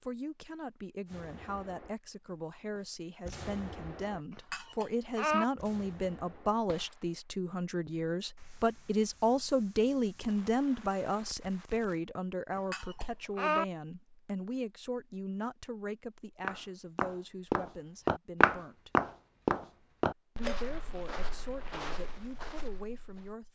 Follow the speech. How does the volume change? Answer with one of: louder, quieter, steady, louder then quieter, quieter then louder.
louder then quieter.